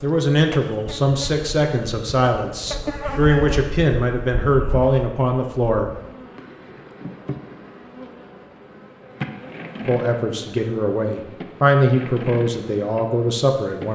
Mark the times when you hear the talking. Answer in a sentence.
You can hear the talking from 0.0 to 5.9 s and from 9.8 to 13.9 s.